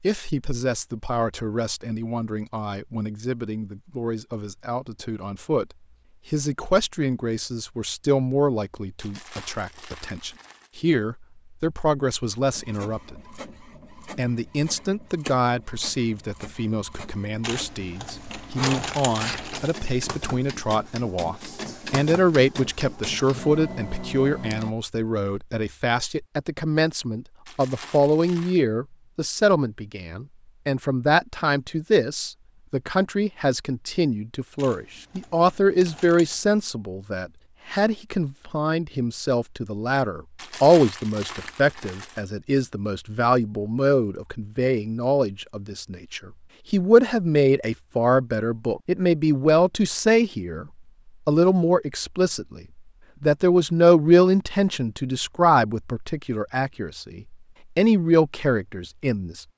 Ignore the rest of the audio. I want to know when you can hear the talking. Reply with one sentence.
You can hear the talking from 0.0 to 13.3 s, from 14.1 to 50.6 s, from 51.2 to 52.6 s and from 53.2 to 59.4 s.